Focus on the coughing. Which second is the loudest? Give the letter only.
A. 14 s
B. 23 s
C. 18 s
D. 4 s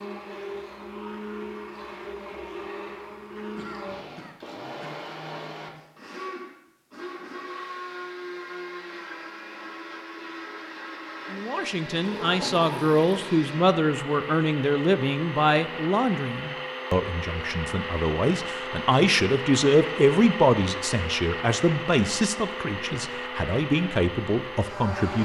D.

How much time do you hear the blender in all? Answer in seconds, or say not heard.
25 s.